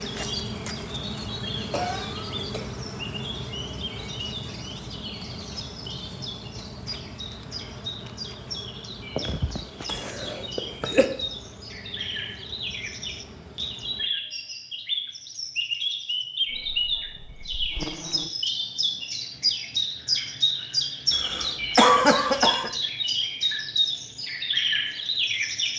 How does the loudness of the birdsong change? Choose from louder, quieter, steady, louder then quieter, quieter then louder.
louder.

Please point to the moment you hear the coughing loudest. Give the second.
22 s.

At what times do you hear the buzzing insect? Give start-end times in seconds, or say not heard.
0.0-14.1, 16.4-18.3.